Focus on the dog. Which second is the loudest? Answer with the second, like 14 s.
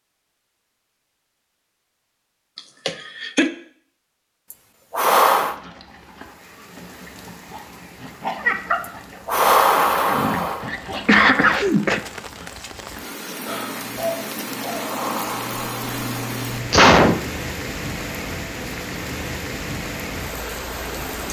9 s.